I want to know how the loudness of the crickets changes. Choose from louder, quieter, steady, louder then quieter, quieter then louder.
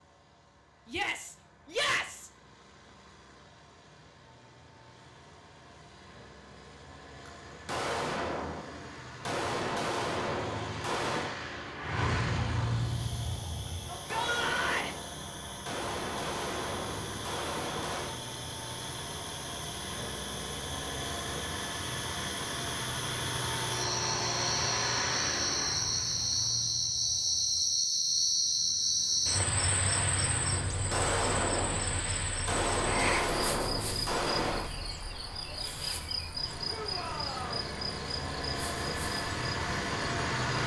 louder then quieter.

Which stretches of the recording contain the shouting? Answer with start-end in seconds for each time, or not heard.
0.8-2.3, 13.8-14.9, 36.6-37.7.